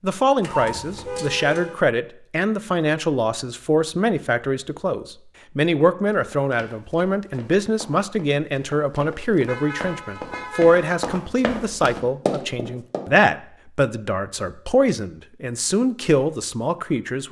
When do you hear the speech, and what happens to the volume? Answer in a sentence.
You can hear the speech from 0.0 to 17.2 s, at a steady volume.